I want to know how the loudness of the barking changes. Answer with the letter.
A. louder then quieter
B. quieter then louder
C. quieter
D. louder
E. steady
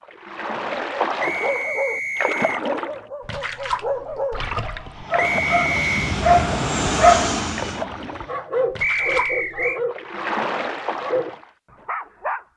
A.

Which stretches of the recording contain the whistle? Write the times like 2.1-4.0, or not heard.
1.2-2.6, 5.2-6.2, 8.8-9.8.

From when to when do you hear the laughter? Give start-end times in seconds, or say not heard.
not heard.